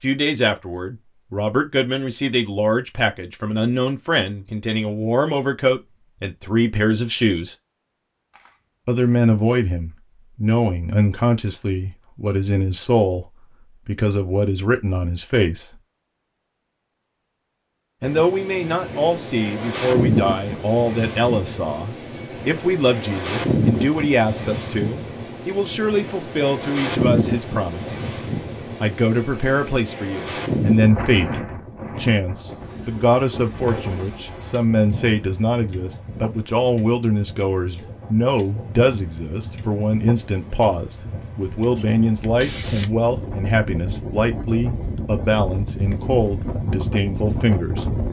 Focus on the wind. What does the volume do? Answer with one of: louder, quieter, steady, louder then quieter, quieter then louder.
quieter then louder.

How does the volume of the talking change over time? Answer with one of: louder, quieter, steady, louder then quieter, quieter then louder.
steady.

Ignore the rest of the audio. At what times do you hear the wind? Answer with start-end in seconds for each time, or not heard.
18.0-48.0.